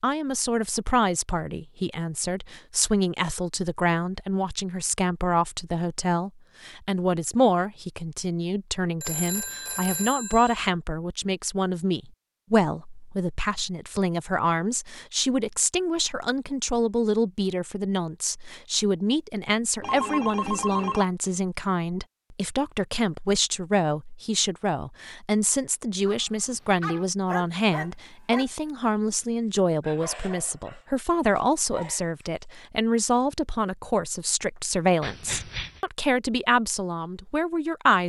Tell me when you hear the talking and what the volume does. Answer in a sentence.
You can hear the talking from 0.0 to 38.0 s, at a steady volume.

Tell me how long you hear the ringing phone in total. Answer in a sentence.
You can hear the ringing phone for 4 seconds altogether.